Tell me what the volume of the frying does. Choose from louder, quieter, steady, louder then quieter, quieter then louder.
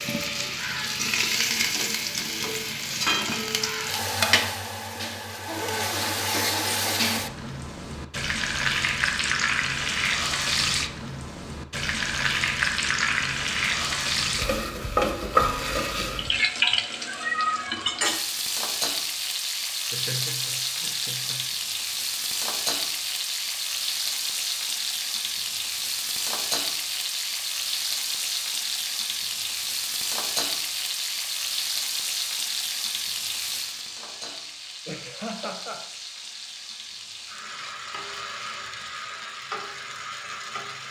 quieter.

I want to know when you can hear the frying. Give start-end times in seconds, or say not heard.
0.0-40.8.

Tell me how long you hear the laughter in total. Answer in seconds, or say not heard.
4 s.